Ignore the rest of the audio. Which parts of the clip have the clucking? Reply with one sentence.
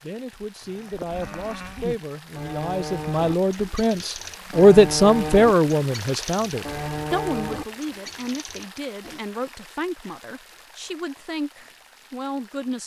The clucking can't be heard in this clip.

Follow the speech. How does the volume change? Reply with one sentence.
The loudness of the speech goes up, then down.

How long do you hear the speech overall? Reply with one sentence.
The speech can be heard for 13 seconds in total.